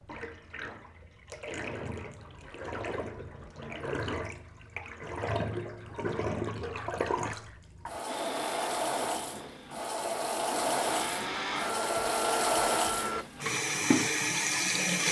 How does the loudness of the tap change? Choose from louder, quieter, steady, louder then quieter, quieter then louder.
louder.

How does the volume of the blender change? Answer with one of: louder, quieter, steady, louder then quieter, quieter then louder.
quieter then louder.